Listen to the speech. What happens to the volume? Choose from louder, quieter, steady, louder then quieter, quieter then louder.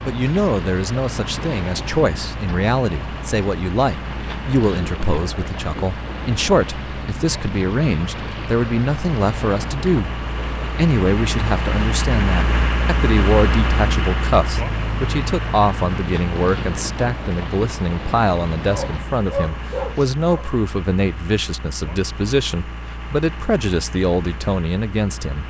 steady.